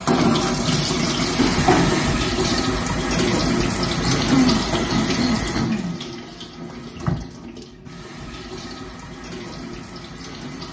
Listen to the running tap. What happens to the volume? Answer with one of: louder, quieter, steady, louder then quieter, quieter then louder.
quieter.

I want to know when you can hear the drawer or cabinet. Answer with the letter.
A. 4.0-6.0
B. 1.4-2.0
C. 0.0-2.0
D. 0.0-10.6
B.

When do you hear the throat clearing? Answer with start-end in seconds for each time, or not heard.
4.0-6.0.